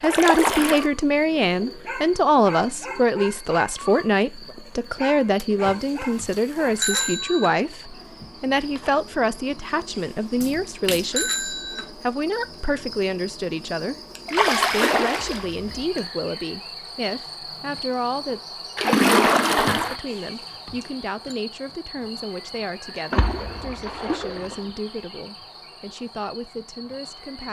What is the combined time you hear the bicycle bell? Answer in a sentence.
The bicycle bell can be heard for 5 seconds in total.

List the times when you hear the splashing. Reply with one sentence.
You can hear the splashing from 0.0 to 0.9 s, from 5.3 to 6.8 s, from 10.4 to 11.1 s, from 14.2 to 15.8 s, from 18.8 to 20.0 s and from 23.1 to 24.7 s.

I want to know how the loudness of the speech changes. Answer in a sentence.
The volume of the speech goes down.